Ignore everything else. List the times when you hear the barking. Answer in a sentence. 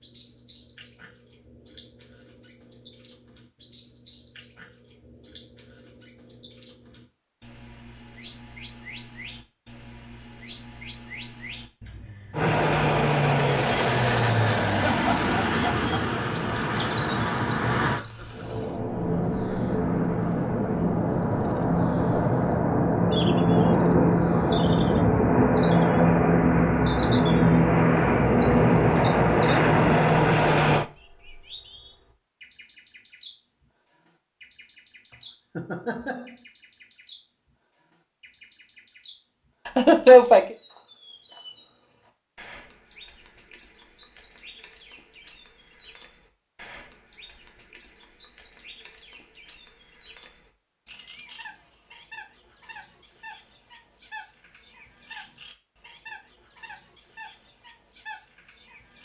The barking can't be heard in this clip.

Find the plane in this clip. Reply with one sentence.
The plane can be heard from 12.3 to 30.9 s.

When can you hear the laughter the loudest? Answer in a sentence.
The loudest moment of the laughter is at 40 seconds.